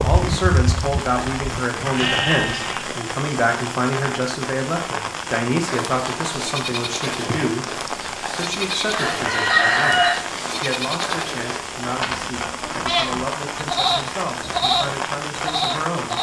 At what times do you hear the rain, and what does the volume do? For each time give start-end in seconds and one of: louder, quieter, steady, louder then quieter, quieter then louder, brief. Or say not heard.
0.0-16.1 steady.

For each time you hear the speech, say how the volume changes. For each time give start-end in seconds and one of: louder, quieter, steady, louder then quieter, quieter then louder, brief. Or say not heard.
0.0-16.1 quieter.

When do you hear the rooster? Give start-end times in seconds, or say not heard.
8.7-10.2.